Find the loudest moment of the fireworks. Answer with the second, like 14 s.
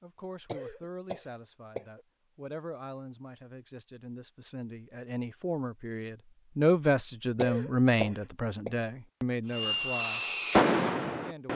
10 s.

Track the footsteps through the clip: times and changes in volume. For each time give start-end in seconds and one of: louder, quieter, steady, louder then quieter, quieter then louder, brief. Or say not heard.
not heard.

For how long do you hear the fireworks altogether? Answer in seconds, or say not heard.
2 s.